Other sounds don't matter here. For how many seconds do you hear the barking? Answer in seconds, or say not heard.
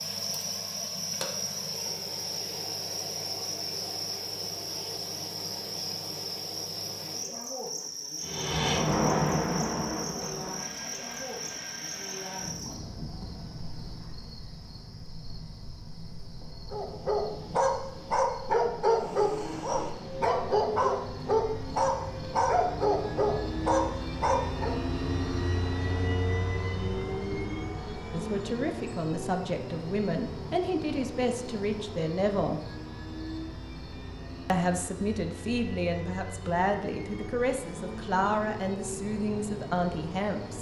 8 s.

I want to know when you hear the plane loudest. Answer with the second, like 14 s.
9 s.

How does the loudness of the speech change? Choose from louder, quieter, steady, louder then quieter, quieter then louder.
steady.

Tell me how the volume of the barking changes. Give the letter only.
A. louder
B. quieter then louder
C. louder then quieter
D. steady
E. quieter
D.